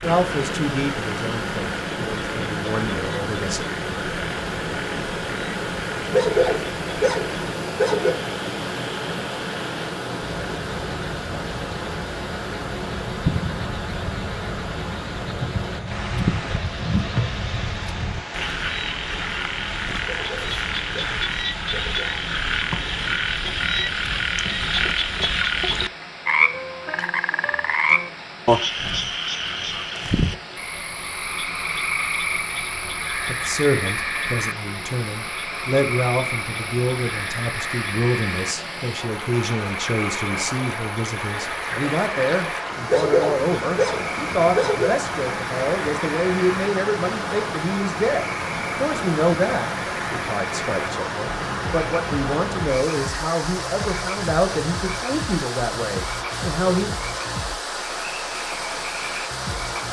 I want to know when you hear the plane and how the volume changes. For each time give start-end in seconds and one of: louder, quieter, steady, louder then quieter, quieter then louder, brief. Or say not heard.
not heard.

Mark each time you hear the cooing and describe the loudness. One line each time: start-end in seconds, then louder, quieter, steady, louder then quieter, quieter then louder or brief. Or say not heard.
not heard.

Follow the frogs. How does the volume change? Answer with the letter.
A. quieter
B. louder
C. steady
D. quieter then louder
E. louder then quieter
E.